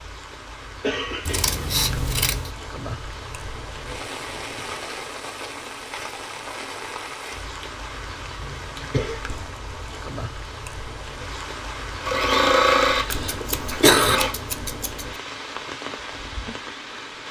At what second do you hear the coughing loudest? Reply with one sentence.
The loudest moment of the coughing is at 14 seconds.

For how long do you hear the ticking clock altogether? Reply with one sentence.
The ticking clock can't be heard in this clip.